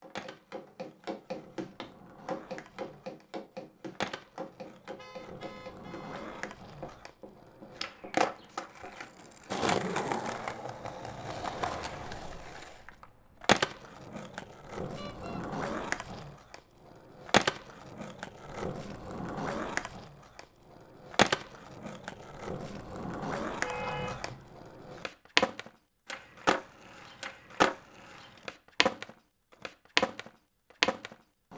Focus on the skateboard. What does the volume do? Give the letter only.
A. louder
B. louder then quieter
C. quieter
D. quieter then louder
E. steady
A.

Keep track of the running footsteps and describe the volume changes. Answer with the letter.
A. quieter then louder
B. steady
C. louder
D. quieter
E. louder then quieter
D.